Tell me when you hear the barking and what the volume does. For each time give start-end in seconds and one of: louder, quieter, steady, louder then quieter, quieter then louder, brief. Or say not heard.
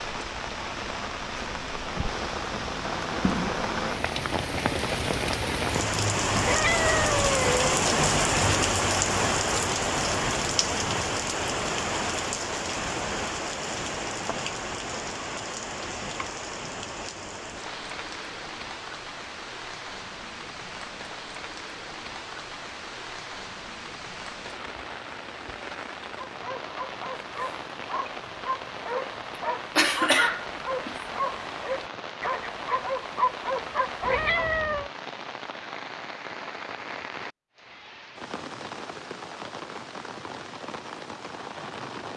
26.1-34.5 louder.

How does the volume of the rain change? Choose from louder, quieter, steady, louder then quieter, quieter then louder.
quieter.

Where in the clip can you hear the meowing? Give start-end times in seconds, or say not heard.
6.4-7.7, 34.0-34.9.